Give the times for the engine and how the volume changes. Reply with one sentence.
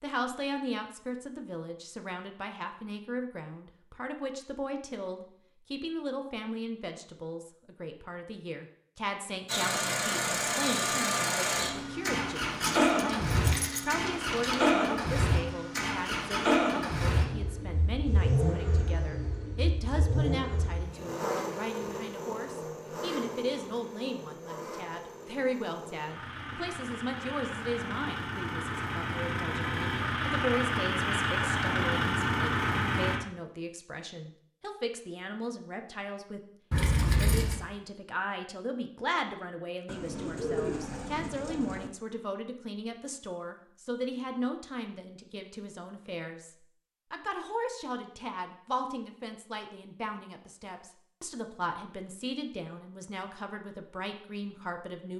You can hear the engine from 9.4 to 33.2 s, getting quieter then louder.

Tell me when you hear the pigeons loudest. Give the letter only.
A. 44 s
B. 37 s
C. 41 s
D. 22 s
C.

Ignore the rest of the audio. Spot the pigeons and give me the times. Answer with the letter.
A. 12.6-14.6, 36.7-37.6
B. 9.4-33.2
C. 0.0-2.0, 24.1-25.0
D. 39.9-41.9
D.